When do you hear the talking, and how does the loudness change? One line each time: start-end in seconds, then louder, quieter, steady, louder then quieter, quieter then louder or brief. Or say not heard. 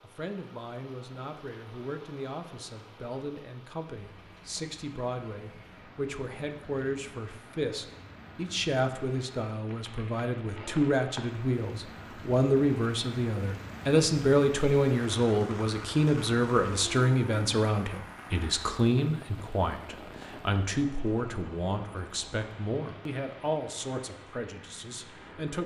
0.0-25.6 louder then quieter.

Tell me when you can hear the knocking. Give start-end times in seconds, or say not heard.
not heard.